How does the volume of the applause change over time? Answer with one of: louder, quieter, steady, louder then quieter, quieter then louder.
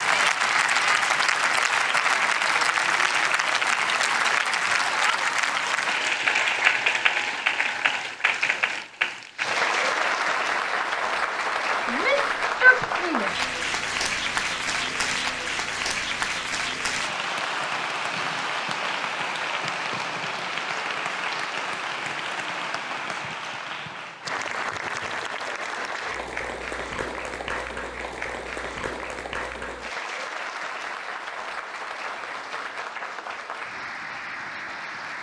quieter.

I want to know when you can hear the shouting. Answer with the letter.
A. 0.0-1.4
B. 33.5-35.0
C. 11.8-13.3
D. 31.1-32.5
C.